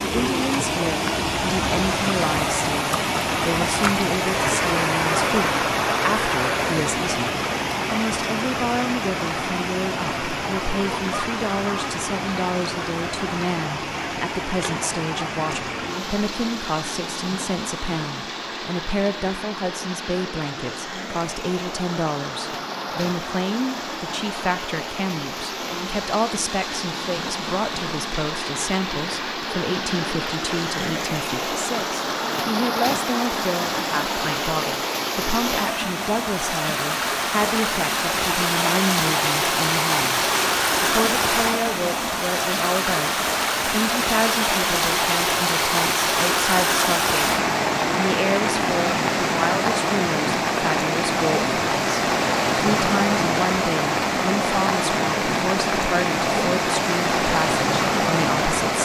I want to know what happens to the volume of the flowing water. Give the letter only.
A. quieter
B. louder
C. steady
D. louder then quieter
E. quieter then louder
E.